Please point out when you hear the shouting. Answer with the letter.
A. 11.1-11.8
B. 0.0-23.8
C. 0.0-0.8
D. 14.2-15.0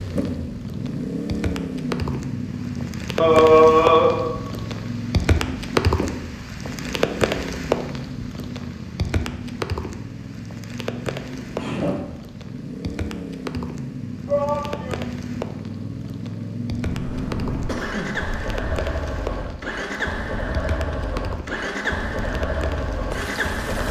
D.